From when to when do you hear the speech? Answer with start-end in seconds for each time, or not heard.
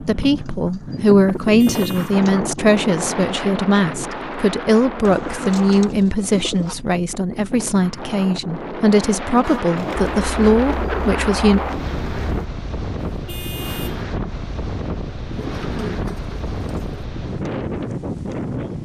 0.0-11.6.